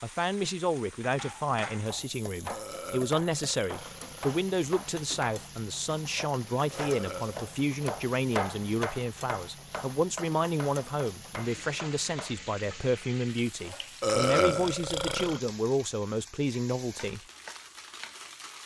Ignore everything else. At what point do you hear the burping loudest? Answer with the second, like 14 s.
14 s.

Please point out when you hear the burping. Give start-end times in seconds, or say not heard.
2.5-4.3, 6.7-7.4, 14.0-15.4.